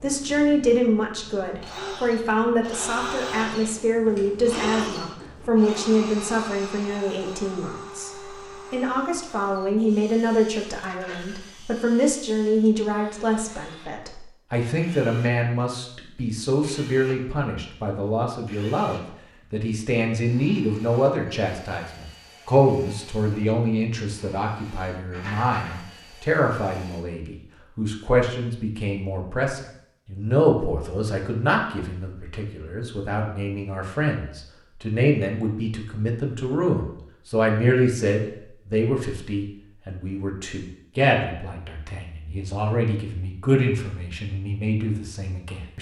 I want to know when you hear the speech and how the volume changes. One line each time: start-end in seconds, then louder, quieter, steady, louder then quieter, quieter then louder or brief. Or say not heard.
0.0-45.7 steady.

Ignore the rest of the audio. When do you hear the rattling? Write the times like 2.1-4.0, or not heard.
10.8-11.4, 25.1-25.8.